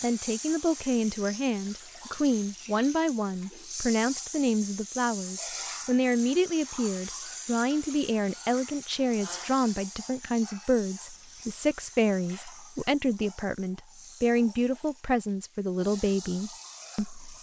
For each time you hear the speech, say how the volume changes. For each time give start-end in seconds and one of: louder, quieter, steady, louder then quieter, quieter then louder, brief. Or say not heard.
0.0-17.3 steady.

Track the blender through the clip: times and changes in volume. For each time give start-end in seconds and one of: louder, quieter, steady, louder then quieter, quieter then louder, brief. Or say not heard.
not heard.